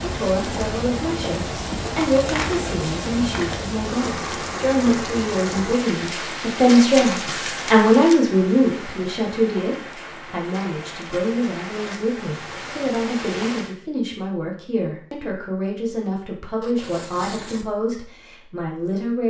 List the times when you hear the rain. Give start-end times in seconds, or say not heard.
0.0-13.8.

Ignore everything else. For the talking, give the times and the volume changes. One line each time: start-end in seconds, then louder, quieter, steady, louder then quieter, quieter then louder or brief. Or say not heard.
0.0-19.2 louder then quieter.